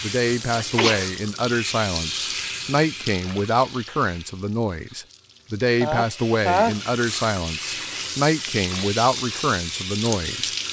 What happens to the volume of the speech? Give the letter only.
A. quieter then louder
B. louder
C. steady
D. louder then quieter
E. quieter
C.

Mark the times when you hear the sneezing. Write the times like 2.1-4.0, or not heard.
0.6-1.1, 5.8-6.8.